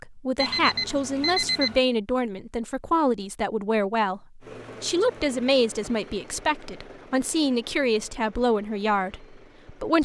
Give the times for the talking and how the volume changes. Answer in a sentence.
You can hear the talking from 0.0 to 10.0 s, at a steady volume.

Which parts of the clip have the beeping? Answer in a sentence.
The beeping can be heard from 0.3 to 1.8 s.